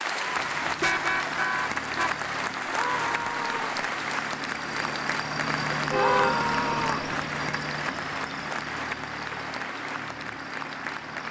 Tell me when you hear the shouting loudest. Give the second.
6 s.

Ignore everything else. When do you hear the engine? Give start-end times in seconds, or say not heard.
0.1-11.2.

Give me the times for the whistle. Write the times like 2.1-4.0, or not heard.
not heard.